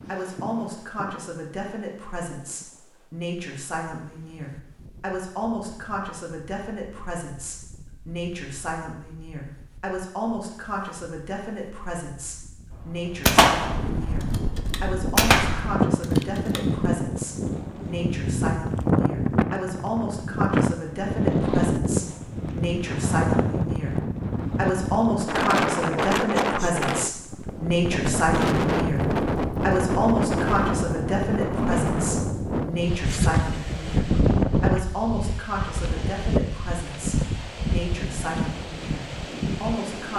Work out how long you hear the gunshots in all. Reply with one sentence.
The gunshots can be heard for 4 seconds in total.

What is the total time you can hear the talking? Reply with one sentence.
The talking can be heard for 40 seconds in total.